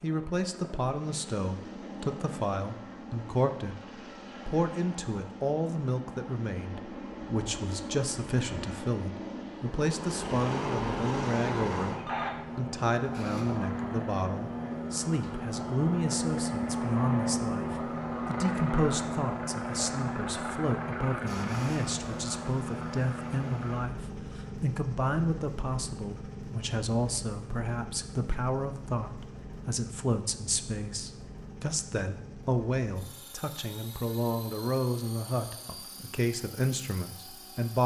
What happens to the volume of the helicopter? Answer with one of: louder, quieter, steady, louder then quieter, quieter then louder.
louder then quieter.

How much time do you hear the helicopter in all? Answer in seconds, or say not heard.
38 s.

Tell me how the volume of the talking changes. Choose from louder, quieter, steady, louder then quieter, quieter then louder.
steady.